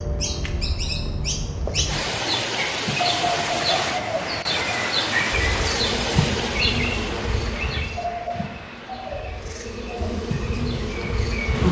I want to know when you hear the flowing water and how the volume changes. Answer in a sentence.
The flowing water can be heard from 1.9 to 11.6 s, getting quieter.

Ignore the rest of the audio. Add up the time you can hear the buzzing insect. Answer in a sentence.
You can hear the buzzing insect for 6 seconds altogether.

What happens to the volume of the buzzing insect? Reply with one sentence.
The volume of the buzzing insect goes down, then up.